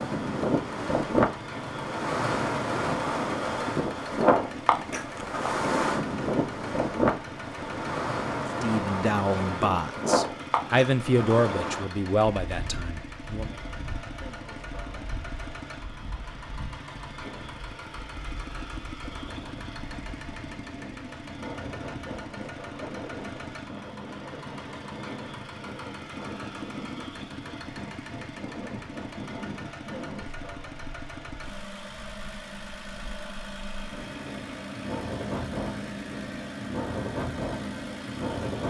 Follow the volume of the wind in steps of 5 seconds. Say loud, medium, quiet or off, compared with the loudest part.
loud, loud, medium, quiet, quiet, quiet, quiet, medium.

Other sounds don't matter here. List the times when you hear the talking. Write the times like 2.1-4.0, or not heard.
8.6-13.6.